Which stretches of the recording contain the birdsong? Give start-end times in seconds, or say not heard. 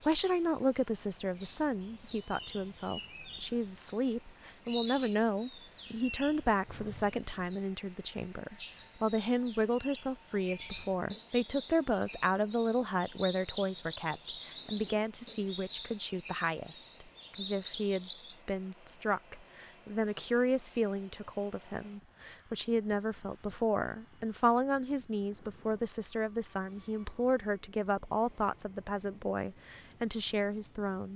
0.0-18.4.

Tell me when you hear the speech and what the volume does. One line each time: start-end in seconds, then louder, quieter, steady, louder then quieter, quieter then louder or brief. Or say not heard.
0.0-31.1 steady.